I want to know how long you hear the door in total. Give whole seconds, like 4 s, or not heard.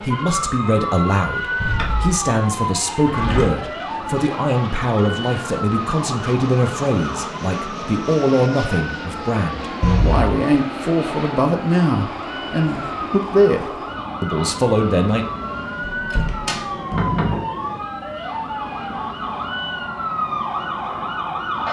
3 s.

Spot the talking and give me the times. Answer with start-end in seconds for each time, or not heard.
0.0-15.2.